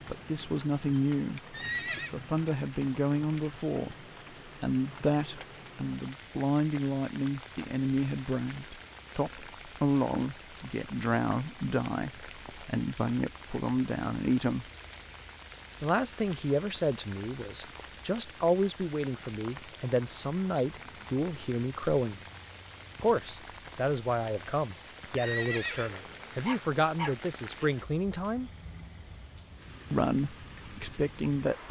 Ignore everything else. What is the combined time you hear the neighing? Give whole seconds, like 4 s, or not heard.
2 s.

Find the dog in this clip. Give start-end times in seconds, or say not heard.
26.4-27.8.